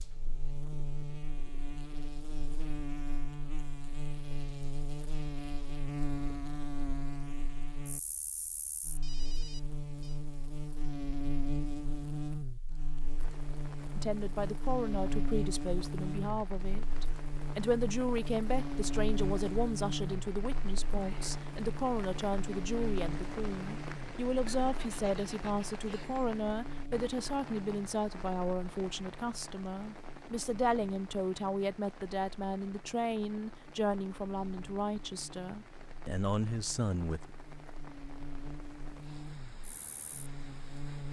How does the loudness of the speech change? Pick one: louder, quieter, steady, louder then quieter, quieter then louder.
steady.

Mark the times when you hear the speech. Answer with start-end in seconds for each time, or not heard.
13.9-37.3.